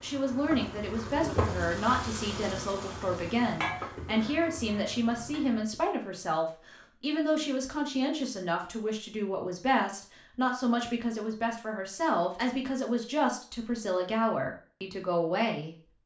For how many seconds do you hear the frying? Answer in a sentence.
You can hear the frying for 6 seconds altogether.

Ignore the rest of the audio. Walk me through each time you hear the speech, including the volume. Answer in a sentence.
You can hear the speech from 0.0 to 15.8 s, at a steady volume.